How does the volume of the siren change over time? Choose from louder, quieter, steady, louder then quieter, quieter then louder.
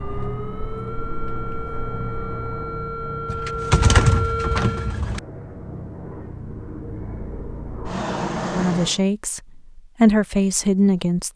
louder.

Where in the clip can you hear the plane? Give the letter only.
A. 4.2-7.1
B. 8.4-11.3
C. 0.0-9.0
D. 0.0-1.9
C.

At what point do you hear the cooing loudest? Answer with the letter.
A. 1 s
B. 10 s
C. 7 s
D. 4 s
D.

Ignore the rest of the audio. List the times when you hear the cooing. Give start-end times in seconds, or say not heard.
3.2-5.2.